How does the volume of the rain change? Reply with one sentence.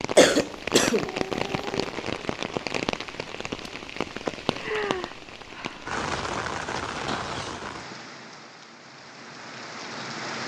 The volume of the rain goes down.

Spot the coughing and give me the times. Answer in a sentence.
You can hear the coughing from 0.1 to 1.9 s and from 7.0 to 8.0 s.